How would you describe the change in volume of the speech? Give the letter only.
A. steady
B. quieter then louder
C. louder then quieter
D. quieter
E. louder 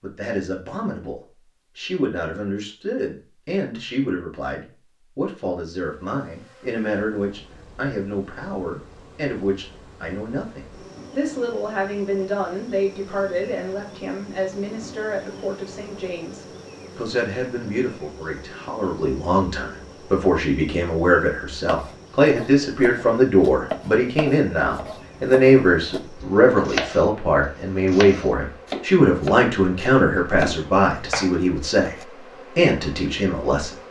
E.